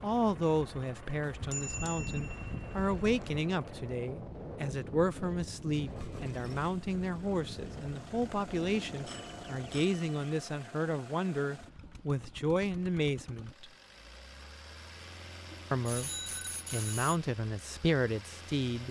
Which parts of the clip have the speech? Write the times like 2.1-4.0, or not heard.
0.0-13.7, 15.7-16.1, 16.7-18.8.